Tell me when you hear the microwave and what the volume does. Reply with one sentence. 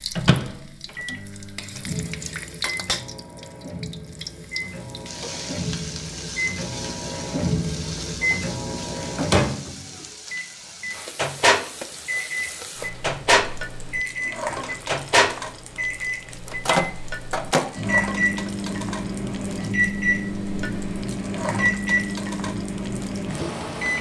You can hear the microwave from 0.0 to 23.9 s, getting louder.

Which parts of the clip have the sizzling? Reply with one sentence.
You can hear the sizzling from 0.0 to 23.9 s.